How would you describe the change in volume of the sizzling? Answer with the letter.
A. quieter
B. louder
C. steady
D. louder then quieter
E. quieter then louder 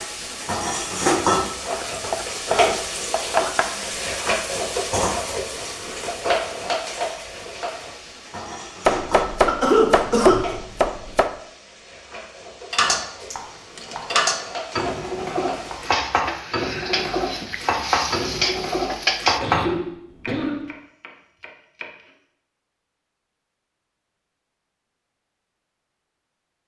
E.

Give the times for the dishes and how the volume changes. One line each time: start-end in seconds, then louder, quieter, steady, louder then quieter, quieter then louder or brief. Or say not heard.
12.7-19.6 steady.